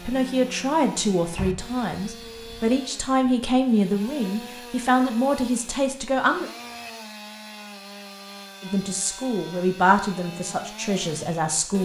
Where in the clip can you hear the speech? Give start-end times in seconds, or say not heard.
0.0-6.5, 8.6-11.7.